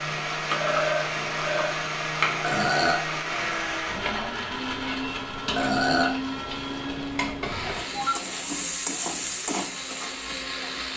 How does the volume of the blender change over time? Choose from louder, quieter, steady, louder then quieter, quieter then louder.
quieter.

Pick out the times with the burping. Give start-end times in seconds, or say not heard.
2.4-3.0, 5.5-6.2.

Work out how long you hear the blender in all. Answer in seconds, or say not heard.
11 s.